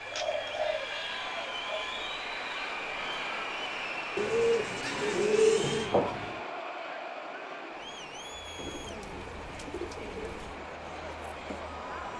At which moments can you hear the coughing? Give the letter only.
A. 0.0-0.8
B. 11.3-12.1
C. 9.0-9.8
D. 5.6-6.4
D.